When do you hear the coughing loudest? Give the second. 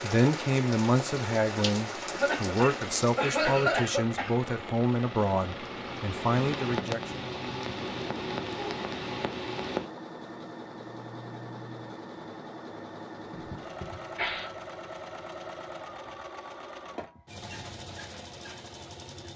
4 s.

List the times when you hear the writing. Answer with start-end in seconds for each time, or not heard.
not heard.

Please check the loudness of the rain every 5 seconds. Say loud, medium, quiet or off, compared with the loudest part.
loud, loud, off, off.